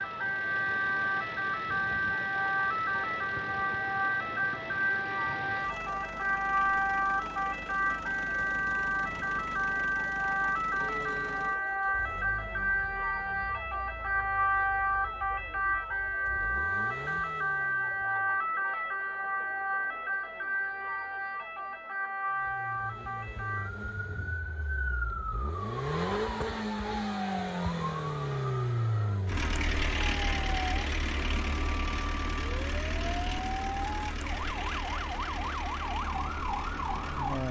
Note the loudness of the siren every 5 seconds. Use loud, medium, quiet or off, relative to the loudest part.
loud, loud, loud, loud, medium, medium, medium, medium.